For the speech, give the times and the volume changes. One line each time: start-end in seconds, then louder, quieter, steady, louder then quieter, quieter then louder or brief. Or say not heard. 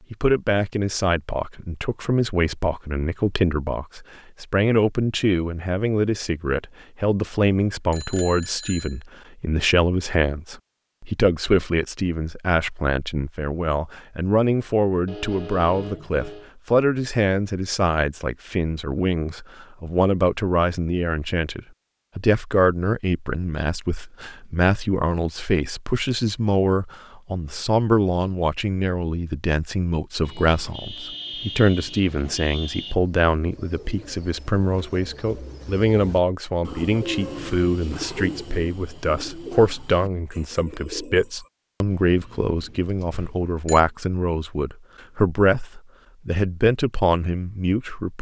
0.1-48.1 steady.